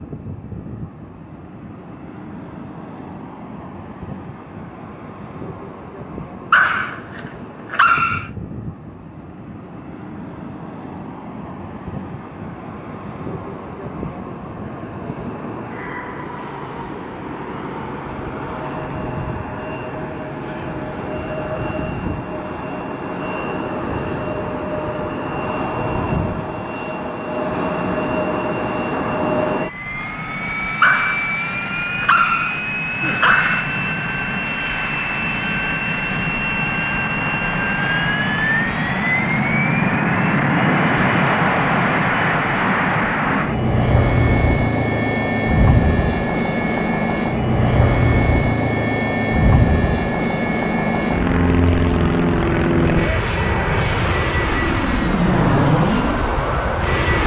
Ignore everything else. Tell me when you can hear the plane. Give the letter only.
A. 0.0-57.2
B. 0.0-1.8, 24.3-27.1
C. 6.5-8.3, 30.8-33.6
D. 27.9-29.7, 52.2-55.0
A.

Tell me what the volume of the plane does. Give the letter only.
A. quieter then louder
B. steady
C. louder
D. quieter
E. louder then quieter
C.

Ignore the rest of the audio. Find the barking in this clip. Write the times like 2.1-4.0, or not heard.
6.5-8.3, 30.8-33.6.